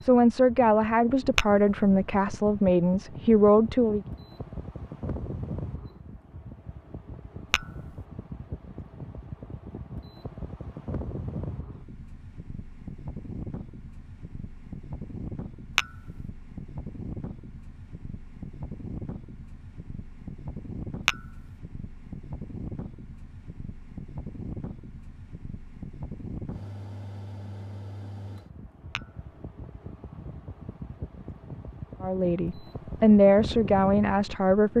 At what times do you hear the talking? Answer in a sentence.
The talking can be heard from 0.0 to 4.0 s and from 32.0 to 34.7 s.